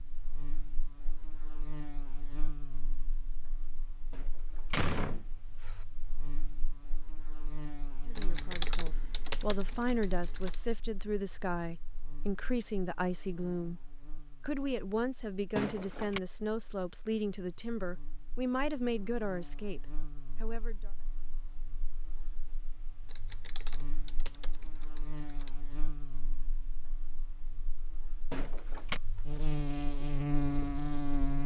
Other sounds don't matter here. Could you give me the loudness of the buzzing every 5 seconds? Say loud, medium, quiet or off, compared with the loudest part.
quiet, quiet, quiet, quiet, quiet, medium, loud.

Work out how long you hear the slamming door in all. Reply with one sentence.
The slamming door can be heard for 3 seconds in total.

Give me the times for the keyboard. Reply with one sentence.
You can hear the keyboard from 8.2 to 10.6 s and from 23.1 to 25.6 s.